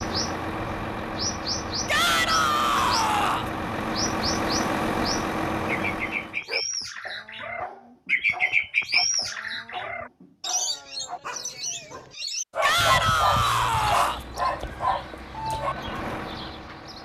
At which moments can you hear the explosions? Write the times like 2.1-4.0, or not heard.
not heard.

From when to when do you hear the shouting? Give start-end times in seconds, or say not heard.
1.9-3.5, 12.6-14.2.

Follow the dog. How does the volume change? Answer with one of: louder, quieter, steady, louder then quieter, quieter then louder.
louder.